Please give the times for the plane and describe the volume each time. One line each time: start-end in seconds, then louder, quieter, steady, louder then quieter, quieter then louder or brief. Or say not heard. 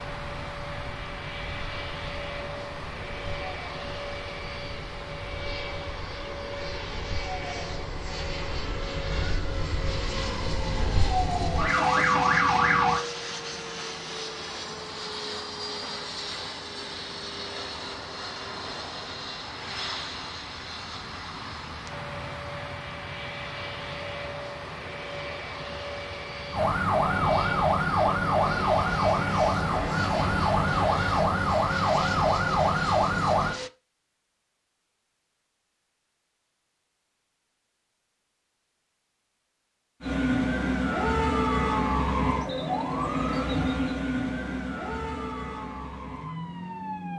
0.0-33.7 steady.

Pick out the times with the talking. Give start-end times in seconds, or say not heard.
not heard.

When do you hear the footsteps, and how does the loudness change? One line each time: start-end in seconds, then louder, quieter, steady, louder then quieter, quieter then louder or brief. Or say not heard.
not heard.